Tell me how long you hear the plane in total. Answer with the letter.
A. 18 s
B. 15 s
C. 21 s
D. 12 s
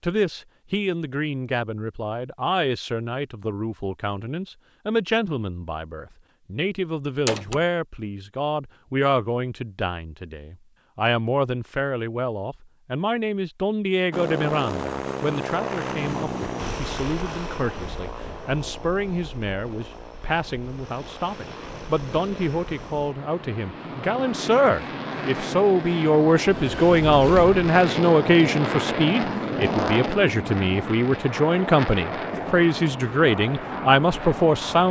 C.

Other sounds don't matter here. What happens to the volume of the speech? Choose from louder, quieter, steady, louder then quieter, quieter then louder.
louder.